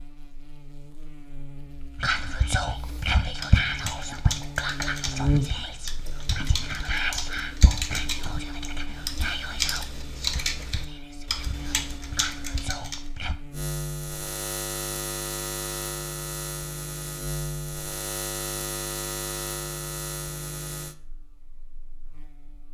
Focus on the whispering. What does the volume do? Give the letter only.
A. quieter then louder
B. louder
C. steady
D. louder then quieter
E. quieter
E.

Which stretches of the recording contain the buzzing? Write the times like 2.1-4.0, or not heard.
0.0-22.6.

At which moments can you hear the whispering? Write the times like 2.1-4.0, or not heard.
1.9-13.3.